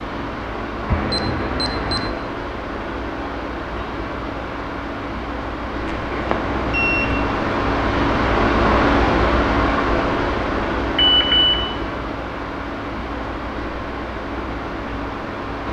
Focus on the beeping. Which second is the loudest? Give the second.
11 s.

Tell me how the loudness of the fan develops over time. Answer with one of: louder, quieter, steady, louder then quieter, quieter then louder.
louder then quieter.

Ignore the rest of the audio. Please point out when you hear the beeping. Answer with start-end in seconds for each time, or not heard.
0.9-2.1, 5.8-7.2, 10.9-11.6.